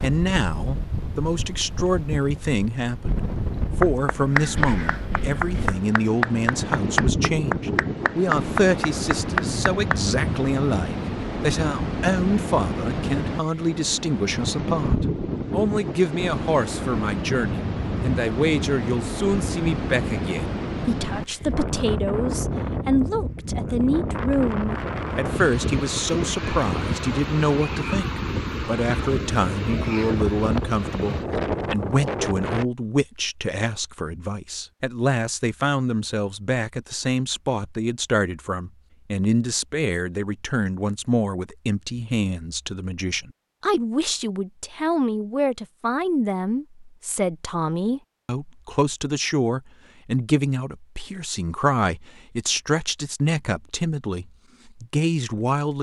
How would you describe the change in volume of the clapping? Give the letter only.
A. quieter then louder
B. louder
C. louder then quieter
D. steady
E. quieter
D.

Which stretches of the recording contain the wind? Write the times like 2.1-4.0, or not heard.
0.0-32.6.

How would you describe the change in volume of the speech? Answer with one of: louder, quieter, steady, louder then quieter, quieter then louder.
steady.